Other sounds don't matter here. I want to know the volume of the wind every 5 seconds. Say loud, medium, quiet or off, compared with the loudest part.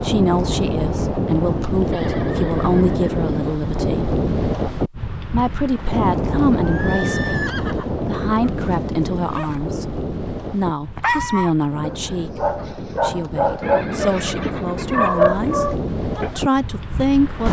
loud, loud, medium, medium.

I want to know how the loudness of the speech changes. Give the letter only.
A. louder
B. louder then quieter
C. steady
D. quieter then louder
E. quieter
C.